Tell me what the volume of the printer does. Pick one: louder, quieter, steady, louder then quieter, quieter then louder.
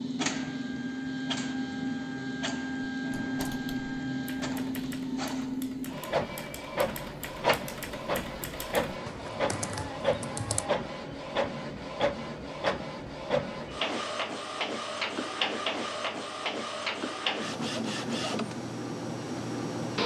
steady.